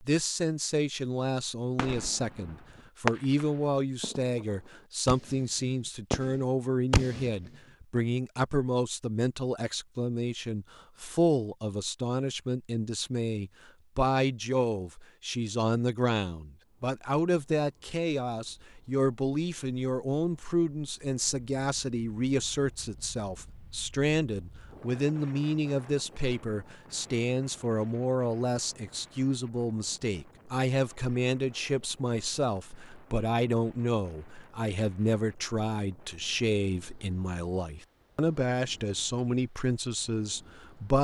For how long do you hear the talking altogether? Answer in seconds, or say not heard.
41 s.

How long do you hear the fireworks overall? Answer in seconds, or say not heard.
5 s.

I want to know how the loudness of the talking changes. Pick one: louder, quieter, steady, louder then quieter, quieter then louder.
steady.